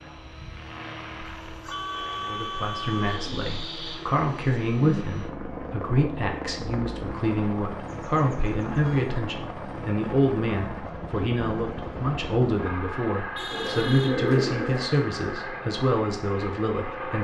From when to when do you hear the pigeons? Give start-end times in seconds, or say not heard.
3.0-5.0, 13.5-15.0.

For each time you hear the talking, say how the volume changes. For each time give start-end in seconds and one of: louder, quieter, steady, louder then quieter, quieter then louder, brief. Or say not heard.
2.2-17.1 steady.